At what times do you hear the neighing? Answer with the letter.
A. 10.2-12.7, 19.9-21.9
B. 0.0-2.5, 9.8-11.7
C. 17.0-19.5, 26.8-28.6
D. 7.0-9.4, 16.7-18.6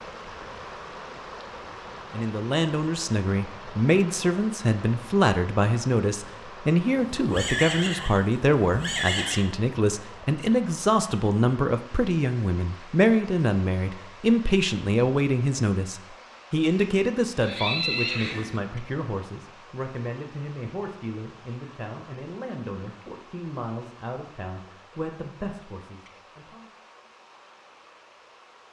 D.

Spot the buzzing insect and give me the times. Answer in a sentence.
The buzzing insect can't be heard in this clip.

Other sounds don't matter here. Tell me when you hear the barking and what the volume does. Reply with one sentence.
The barking can't be heard in this clip.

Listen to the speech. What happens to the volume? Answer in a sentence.
The loudness of the speech goes down.